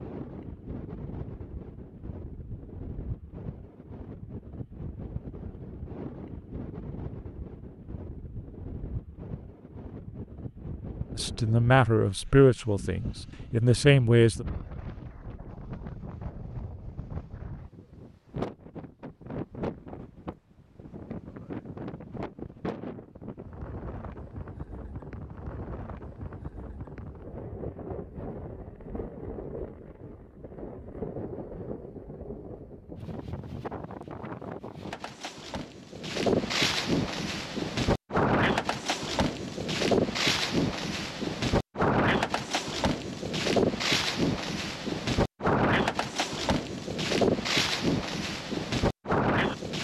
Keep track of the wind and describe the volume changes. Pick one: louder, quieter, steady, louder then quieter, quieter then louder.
louder.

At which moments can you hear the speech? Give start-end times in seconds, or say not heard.
11.2-14.4.